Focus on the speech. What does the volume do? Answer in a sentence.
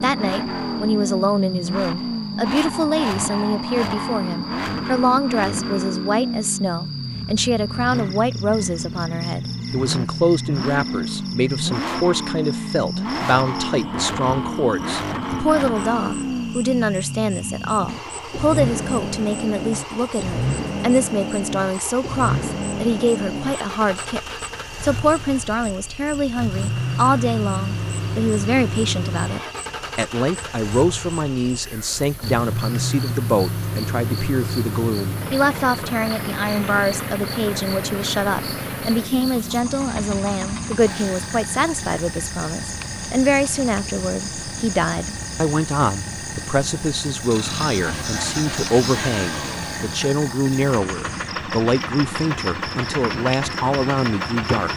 The volume of the speech stays about the same.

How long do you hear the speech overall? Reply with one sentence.
The speech can be heard for 55 seconds in total.